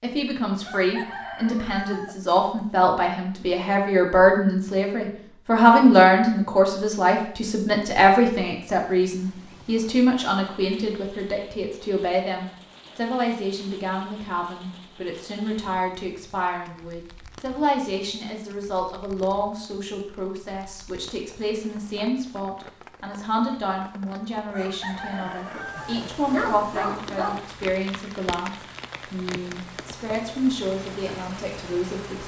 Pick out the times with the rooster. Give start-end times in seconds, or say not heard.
0.7-2.1, 24.5-26.0.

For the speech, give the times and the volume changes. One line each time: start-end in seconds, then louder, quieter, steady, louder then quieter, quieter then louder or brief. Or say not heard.
0.0-32.2 quieter.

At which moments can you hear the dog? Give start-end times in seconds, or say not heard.
25.5-27.4.